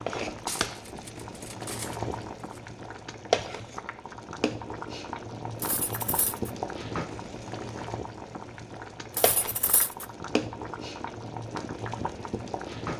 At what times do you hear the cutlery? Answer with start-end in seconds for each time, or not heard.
0.4-2.6, 5.6-6.5, 9.2-10.1.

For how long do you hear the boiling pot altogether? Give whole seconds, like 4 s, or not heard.
13 s.